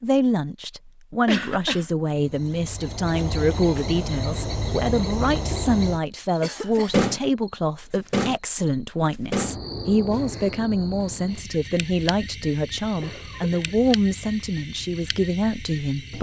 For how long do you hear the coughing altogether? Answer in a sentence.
The coughing can be heard for 2 seconds in total.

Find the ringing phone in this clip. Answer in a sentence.
The ringing phone can't be heard in this clip.